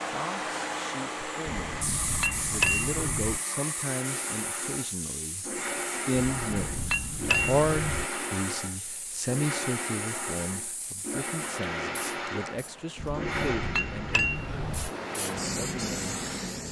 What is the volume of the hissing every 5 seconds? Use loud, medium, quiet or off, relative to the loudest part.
loud, medium, medium, loud.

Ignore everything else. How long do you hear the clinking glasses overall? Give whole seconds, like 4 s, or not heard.
6 s.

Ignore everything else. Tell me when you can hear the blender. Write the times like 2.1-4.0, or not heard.
0.0-16.6.